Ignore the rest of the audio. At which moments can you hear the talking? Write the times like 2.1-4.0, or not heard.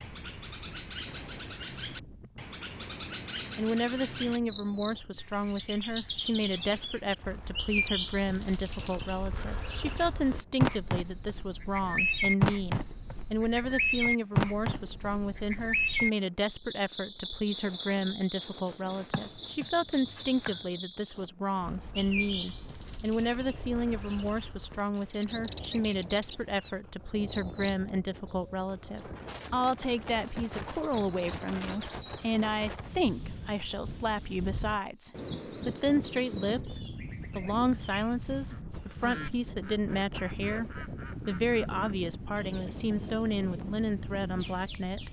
3.5-45.0.